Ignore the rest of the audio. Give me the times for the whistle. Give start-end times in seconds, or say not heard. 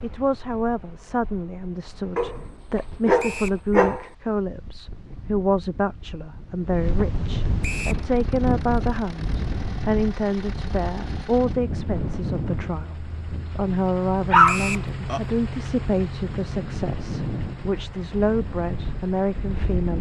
3.1-3.6, 7.6-8.1, 14.4-14.9.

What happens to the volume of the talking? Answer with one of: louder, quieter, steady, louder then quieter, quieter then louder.
steady.